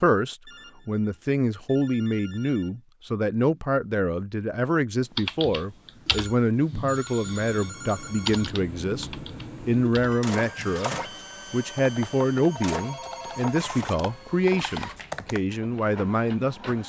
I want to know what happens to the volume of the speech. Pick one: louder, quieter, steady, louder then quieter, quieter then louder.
steady.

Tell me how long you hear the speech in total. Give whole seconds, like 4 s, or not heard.
17 s.